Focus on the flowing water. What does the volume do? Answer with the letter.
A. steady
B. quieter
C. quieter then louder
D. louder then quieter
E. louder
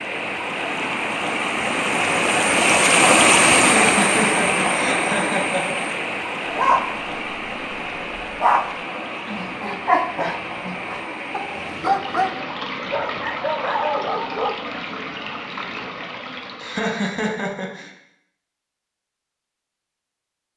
B.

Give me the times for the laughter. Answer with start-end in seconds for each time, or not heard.
3.6-5.7, 16.6-17.9.